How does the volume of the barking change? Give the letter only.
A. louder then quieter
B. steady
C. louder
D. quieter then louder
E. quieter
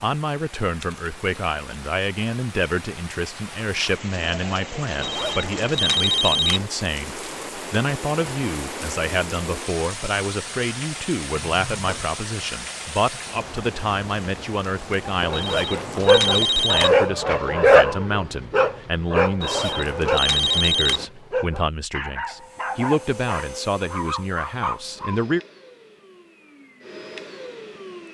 E.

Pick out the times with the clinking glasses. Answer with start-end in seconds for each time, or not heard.
not heard.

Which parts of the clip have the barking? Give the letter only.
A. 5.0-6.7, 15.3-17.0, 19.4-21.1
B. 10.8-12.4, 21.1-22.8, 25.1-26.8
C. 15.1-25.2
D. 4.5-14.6
C.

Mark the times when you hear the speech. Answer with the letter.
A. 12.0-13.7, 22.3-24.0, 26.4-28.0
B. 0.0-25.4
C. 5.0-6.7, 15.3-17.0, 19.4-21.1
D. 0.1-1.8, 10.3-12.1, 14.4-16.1
B.